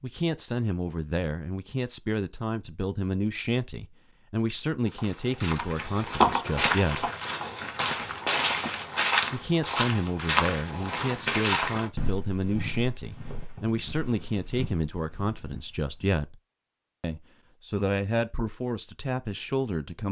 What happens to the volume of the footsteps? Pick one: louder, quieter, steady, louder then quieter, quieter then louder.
quieter.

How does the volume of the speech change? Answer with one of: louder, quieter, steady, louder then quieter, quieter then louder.
steady.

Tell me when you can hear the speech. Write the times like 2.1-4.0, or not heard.
0.0-7.1, 9.3-16.4, 17.0-20.0.